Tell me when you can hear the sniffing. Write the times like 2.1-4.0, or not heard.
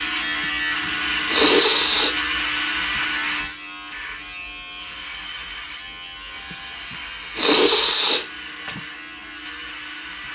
0.8-2.1, 6.9-8.8.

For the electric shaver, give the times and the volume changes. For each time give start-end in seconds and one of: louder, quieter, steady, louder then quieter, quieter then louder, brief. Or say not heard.
0.0-10.3 quieter.